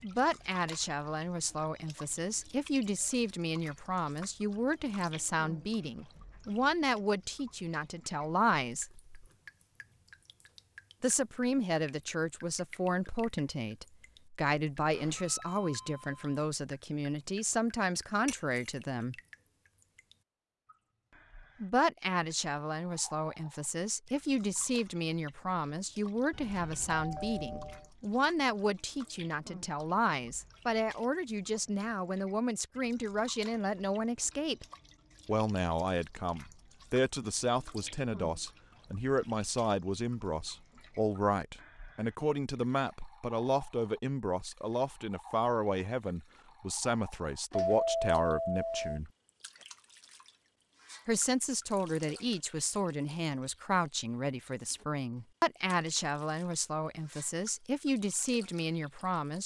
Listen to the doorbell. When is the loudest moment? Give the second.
48 s.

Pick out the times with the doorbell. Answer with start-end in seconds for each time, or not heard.
14.9-16.4, 26.3-27.9, 47.5-49.0.